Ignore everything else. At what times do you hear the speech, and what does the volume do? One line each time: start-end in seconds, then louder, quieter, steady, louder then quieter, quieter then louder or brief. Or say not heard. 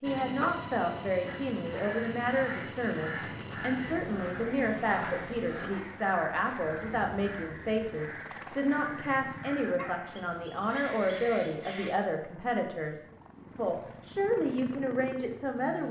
0.0-15.8 steady.